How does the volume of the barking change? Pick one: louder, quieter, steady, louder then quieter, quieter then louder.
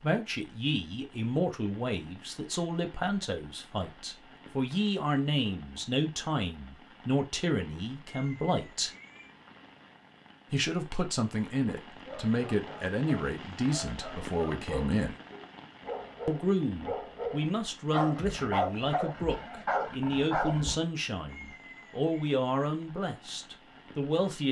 louder.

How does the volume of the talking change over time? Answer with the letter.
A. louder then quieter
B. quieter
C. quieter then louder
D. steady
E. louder
D.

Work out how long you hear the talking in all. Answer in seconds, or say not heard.
22 s.